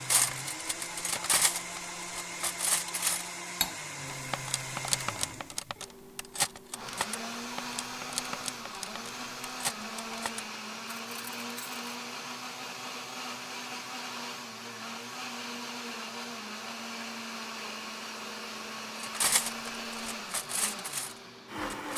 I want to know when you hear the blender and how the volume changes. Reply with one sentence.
You can hear the blender from 0.0 to 21.9 s, at a steady volume.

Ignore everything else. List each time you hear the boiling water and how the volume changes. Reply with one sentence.
The boiling water can't be heard in this clip.